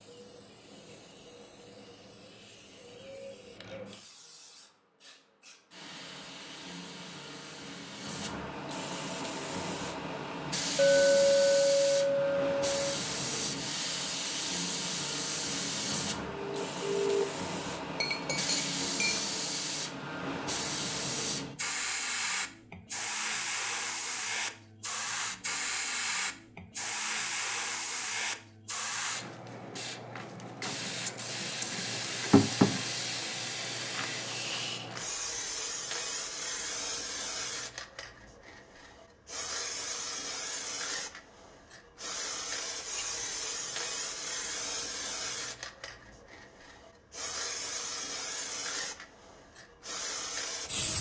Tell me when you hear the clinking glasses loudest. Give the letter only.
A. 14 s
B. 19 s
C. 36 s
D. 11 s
D.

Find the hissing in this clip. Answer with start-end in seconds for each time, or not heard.
0.0-50.9.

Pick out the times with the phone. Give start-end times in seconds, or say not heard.
16.2-17.2.